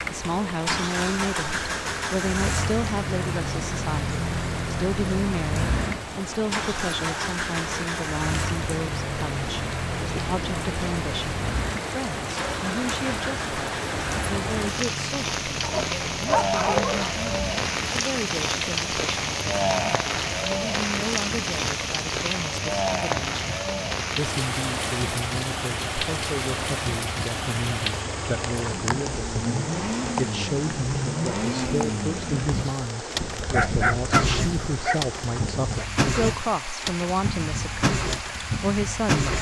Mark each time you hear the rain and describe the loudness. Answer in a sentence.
You can hear the rain from 0.0 to 39.3 s, getting louder then quieter.